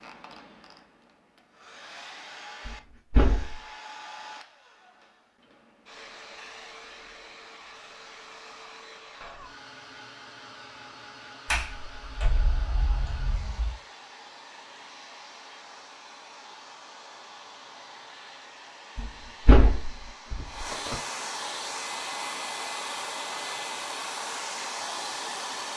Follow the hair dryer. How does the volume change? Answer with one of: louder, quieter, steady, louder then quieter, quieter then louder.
louder.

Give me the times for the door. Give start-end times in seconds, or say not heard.
2.6-3.6, 11.4-13.8, 18.9-20.9.